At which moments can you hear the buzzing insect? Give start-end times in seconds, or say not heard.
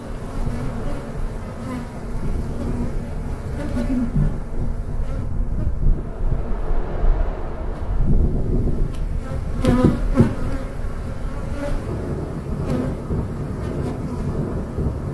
0.0-15.1.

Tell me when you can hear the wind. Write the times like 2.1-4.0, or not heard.
0.0-15.1.